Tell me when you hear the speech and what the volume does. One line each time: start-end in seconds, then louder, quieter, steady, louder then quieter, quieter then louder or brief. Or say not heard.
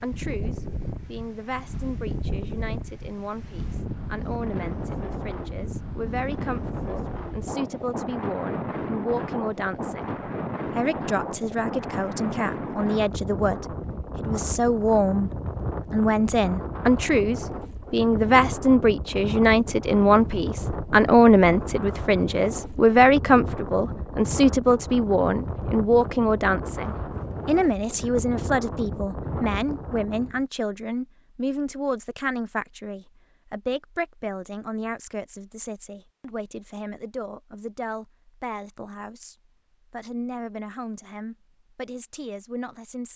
0.0-15.3 louder
15.9-43.1 quieter.